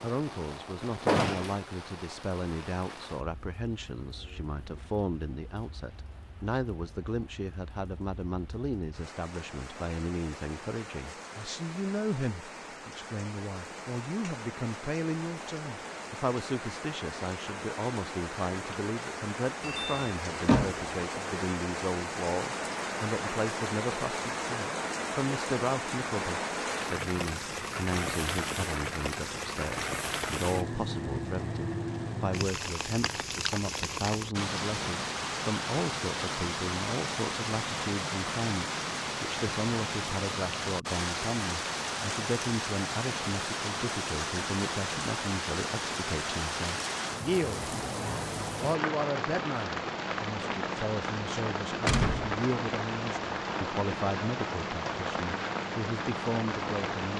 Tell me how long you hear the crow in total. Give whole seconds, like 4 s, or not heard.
not heard.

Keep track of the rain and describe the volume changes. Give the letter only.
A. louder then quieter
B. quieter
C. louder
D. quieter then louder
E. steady
C.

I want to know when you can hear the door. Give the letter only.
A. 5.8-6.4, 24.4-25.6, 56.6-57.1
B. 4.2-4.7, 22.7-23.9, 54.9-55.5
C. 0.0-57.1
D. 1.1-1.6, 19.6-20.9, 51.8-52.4
D.